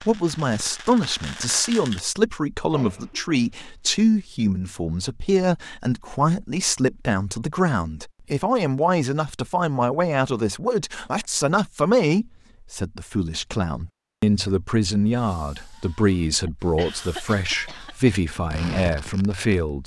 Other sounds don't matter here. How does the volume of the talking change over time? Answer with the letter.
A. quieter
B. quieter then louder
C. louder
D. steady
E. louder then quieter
D.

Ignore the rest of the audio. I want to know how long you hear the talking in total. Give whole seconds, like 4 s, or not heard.
20 s.